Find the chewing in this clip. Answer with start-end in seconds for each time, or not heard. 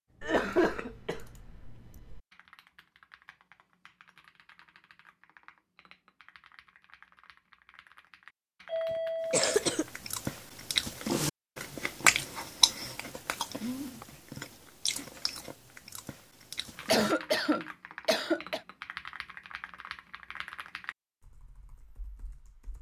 9.4-17.1.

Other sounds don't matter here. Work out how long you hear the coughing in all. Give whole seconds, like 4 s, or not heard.
4 s.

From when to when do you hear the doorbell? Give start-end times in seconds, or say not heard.
8.7-9.5.